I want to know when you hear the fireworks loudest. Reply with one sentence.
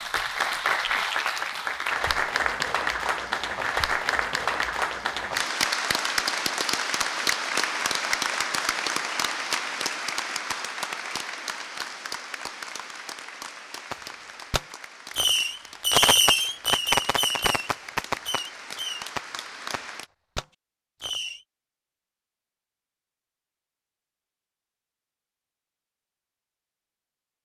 The loudest moment of the fireworks is at 16 seconds.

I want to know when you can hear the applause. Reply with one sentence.
You can hear the applause from 0.0 to 20.1 s.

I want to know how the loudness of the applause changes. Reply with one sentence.
The loudness of the applause goes down.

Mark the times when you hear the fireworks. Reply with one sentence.
You can hear the fireworks from 13.9 to 21.4 s.